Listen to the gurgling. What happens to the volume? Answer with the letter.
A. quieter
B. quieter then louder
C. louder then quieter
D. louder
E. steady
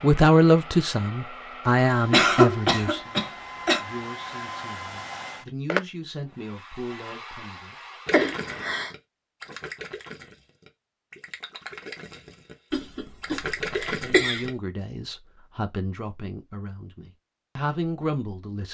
D.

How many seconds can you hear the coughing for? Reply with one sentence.
You can hear the coughing for 4 seconds altogether.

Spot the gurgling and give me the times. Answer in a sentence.
The gurgling can be heard from 8.1 to 14.5 s.